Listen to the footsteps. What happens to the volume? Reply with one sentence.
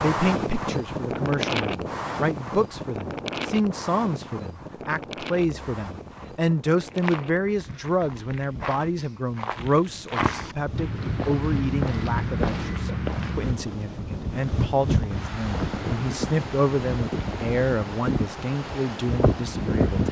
The volume of the footsteps goes up.